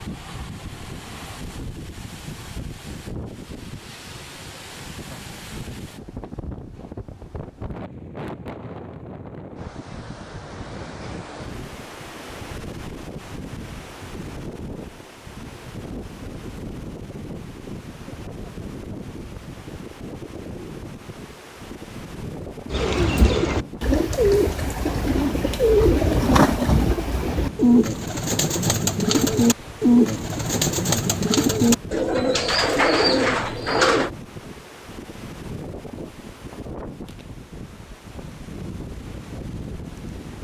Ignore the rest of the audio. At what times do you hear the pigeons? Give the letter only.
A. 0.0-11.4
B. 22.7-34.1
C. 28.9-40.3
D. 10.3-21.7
B.